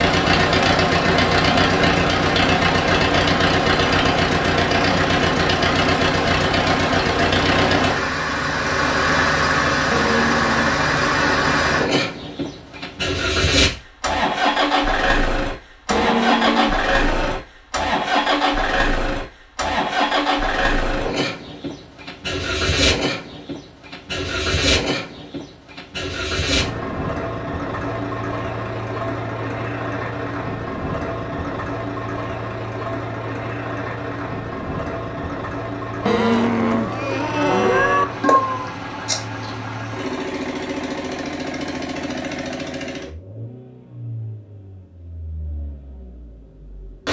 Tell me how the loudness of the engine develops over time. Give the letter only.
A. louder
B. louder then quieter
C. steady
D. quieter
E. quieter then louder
D.